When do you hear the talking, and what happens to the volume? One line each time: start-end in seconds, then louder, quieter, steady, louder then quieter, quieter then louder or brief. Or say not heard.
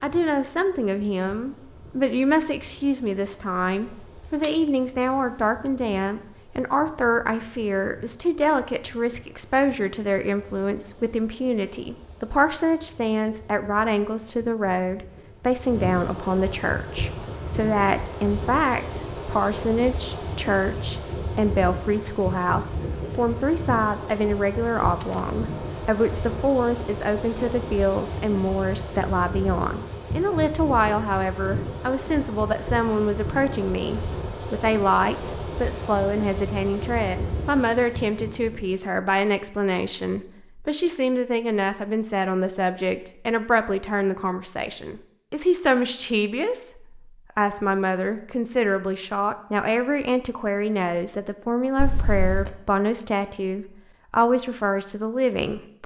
0.0-55.8 steady.